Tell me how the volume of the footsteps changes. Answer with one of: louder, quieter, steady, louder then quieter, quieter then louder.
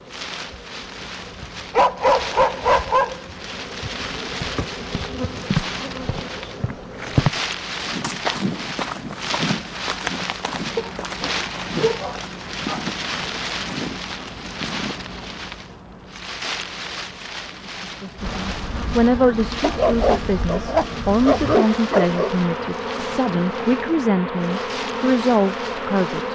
quieter.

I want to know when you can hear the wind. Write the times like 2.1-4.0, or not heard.
0.0-26.2.